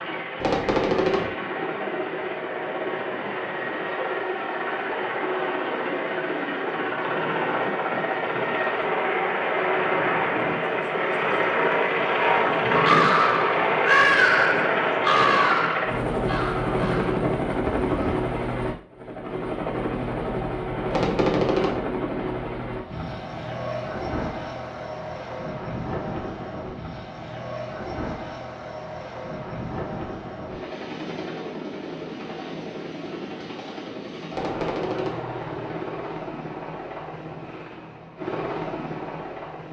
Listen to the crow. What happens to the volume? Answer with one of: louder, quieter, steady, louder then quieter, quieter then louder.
quieter.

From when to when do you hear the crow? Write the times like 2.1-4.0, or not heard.
12.7-18.1.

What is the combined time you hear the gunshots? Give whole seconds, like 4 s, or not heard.
3 s.